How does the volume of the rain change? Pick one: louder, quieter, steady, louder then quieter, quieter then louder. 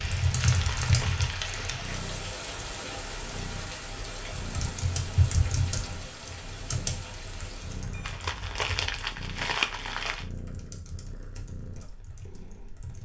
quieter.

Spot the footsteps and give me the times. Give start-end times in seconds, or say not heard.
not heard.